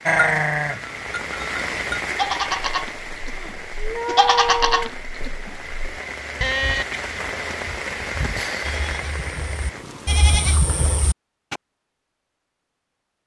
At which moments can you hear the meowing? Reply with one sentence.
You can hear the meowing from 3.4 to 5.0 s.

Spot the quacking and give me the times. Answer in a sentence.
You can't hear the quacking here.